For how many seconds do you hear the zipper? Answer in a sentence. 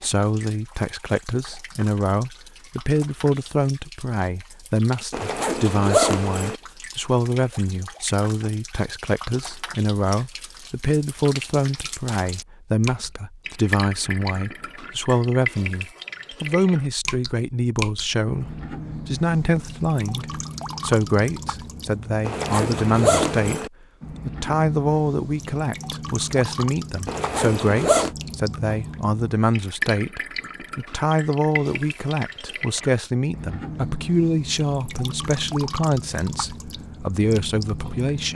The zipper can be heard for 4 seconds in total.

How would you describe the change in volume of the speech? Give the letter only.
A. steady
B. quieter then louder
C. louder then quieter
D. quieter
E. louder
A.